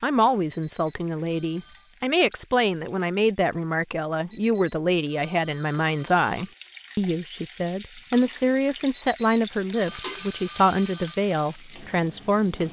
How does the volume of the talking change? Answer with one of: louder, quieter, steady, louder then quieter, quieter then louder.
steady.